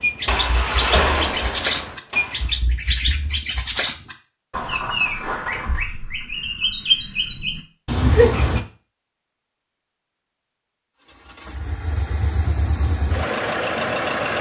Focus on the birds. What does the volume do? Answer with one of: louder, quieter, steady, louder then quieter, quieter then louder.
quieter then louder.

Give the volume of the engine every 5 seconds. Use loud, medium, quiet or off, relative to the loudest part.
loud, off, loud.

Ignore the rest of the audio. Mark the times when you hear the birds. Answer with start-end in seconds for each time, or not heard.
0.0-8.6.